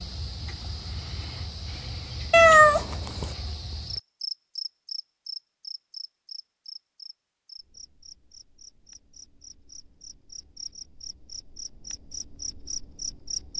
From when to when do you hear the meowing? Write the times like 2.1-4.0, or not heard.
2.3-3.3.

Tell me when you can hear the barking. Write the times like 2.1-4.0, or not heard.
not heard.